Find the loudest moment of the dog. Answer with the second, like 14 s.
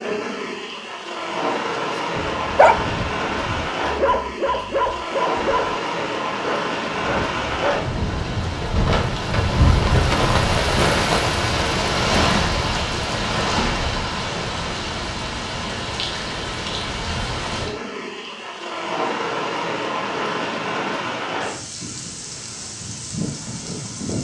3 s.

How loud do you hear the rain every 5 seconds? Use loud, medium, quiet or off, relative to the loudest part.
medium, loud, loud, medium, medium.